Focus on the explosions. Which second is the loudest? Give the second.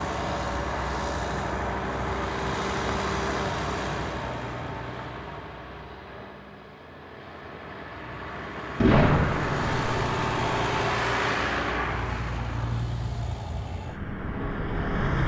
9 s.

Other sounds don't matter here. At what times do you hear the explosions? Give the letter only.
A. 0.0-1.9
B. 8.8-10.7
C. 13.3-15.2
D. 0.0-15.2
B.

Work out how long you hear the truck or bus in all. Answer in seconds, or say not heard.
15 s.